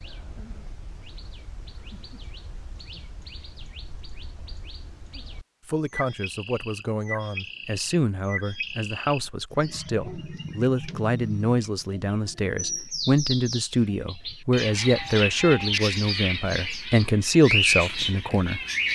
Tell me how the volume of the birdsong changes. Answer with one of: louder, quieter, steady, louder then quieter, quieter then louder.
louder.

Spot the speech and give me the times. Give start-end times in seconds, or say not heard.
5.7-18.6.